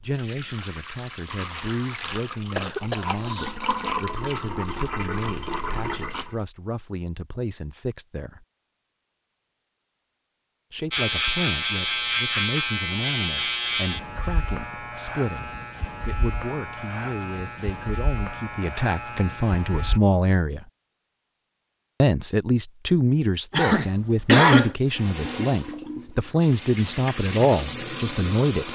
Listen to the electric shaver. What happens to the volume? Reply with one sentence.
The loudness of the electric shaver goes down.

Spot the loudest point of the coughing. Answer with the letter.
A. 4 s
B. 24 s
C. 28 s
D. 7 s
B.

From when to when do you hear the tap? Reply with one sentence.
You can hear the tap from 0.0 to 6.4 s and from 24.9 to 28.6 s.